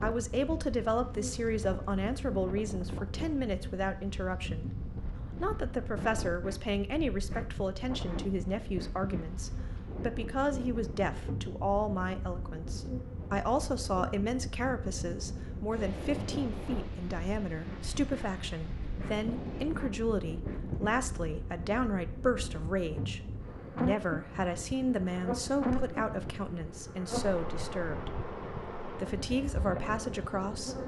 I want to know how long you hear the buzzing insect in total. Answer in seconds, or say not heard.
31 s.